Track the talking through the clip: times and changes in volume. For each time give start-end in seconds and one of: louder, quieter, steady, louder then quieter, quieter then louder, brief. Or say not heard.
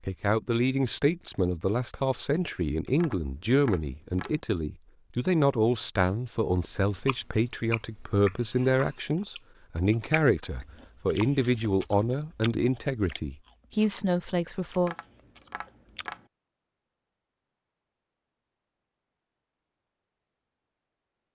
0.1-14.9 steady.